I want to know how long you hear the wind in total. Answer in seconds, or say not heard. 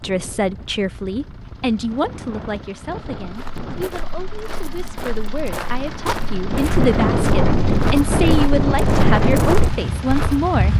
11 s.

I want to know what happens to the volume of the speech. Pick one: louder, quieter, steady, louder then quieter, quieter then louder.
quieter then louder.